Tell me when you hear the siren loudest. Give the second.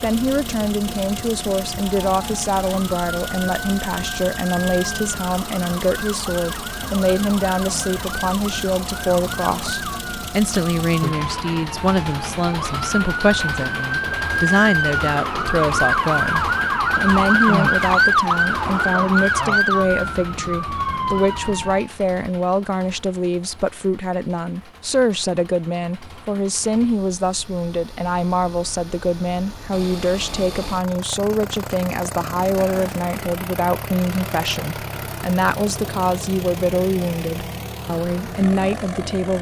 18 s.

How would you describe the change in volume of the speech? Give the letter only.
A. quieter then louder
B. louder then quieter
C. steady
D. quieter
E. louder
C.